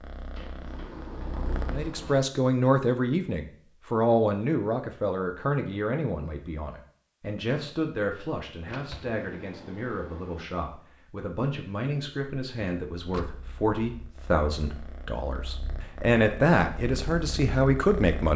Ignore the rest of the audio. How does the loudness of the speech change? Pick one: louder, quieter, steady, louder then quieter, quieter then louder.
quieter then louder.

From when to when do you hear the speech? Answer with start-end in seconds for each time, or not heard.
1.7-18.3.